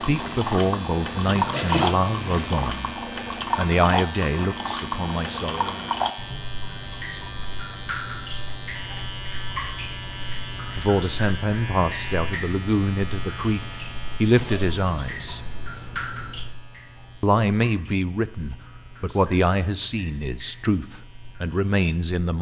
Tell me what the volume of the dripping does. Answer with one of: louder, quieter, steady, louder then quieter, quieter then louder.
quieter.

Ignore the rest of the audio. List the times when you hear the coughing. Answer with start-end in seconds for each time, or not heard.
not heard.